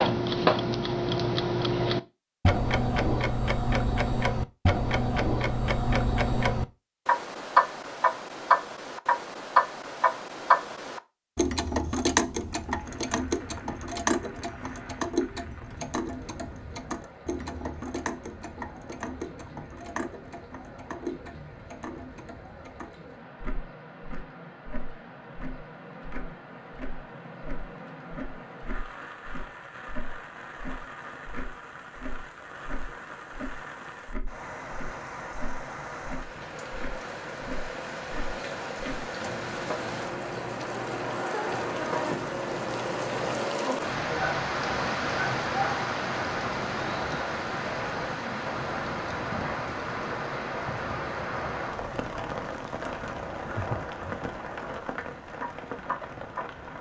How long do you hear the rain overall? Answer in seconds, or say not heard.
44 s.